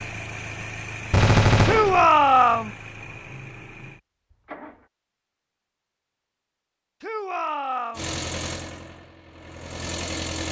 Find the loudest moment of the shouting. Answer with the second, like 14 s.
2 s.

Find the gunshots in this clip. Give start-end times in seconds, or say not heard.
1.1-2.0.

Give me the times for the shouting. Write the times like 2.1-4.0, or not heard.
1.6-2.7, 7.0-8.1.